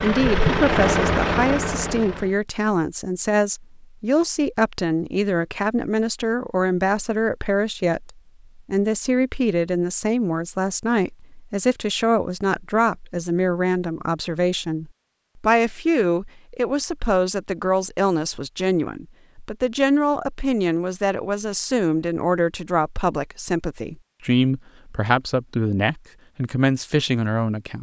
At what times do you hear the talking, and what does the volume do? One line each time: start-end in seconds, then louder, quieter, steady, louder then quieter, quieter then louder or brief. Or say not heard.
0.0-27.7 steady.